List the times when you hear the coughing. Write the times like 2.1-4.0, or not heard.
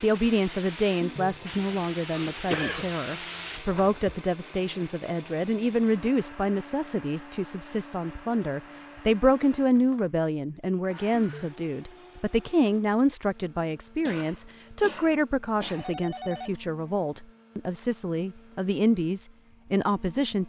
2.1-2.9, 14.1-15.9.